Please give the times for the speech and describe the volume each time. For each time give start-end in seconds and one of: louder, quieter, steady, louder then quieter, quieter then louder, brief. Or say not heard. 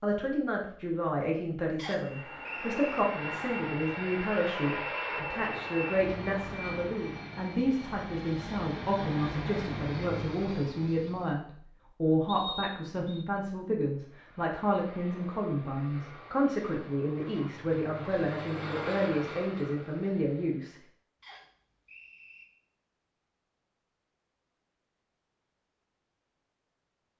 0.0-20.8 steady.